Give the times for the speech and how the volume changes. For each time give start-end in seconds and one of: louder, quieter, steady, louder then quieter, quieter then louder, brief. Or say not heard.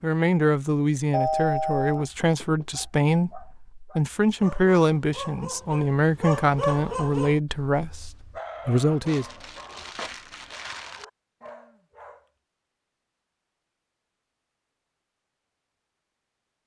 0.0-9.2 steady.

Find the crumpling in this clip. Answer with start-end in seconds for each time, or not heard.
9.1-11.1.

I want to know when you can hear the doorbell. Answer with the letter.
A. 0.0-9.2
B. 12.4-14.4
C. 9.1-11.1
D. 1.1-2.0
D.